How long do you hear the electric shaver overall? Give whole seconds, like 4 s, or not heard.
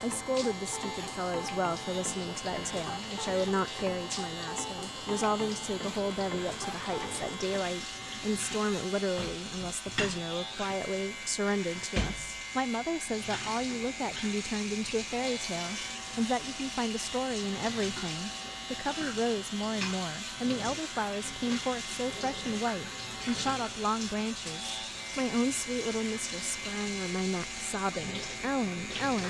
29 s.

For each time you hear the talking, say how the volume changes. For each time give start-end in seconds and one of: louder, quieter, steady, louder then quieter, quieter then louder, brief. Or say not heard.
0.0-29.2 steady.